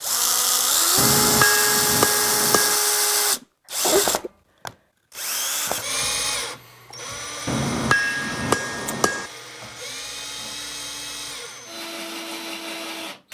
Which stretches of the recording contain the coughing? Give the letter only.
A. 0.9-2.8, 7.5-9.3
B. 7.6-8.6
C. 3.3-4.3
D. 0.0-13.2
C.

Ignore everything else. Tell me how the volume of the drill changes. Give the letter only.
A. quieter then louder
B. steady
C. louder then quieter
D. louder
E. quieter
E.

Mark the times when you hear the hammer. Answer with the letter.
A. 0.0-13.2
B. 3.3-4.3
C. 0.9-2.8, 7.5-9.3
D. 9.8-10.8
C.